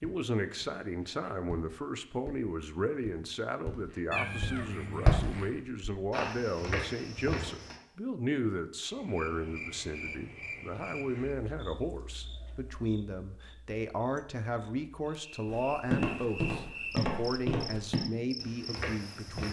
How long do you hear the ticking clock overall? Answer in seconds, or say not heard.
not heard.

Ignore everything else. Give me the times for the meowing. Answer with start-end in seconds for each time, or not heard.
4.1-5.6.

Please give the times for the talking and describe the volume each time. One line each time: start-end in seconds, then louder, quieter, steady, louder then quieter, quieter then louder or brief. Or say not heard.
0.0-19.4 steady.